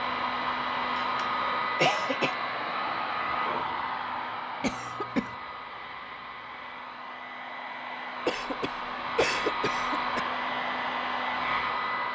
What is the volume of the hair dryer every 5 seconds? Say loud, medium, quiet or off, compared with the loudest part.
loud, medium, loud.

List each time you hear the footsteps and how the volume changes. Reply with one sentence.
You can't hear the footsteps here.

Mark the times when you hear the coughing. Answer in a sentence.
The coughing can be heard from 0.9 to 2.4 s, from 4.6 to 5.3 s and from 8.2 to 10.2 s.